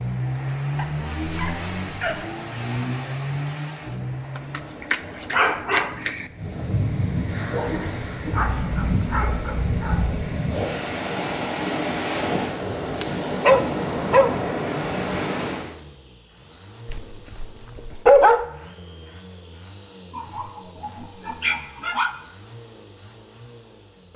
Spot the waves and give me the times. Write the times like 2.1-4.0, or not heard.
0.0-15.7.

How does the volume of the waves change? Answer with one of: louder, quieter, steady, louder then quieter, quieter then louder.
louder.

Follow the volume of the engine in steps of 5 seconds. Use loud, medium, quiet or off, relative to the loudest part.
loud, off, off, quiet, quiet.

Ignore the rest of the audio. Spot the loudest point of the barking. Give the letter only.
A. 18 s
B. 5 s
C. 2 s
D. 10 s
A.